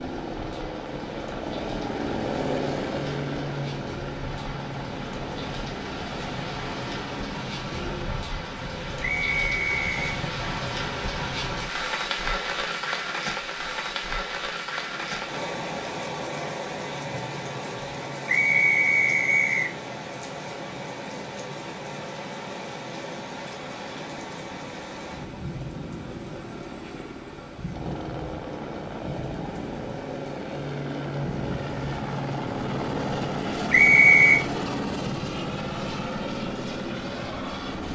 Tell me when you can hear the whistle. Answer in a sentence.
The whistle can be heard from 9.0 to 10.1 s, from 18.2 to 19.8 s and from 33.7 to 34.4 s.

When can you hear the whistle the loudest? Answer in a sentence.
The loudest moment of the whistle is at 34 seconds.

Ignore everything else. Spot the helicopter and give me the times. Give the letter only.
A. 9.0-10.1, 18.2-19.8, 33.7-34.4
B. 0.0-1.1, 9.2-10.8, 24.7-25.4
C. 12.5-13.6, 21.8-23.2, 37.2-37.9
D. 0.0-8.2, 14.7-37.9
D.